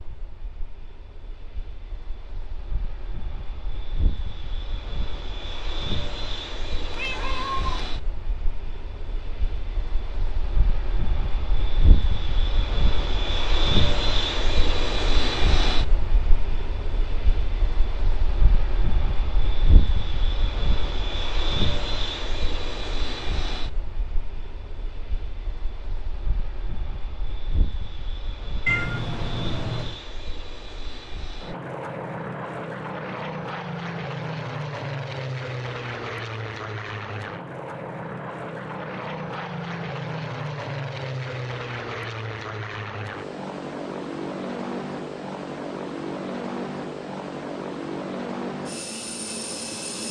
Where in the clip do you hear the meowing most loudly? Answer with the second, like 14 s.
29 s.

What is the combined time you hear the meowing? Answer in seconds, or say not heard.
2 s.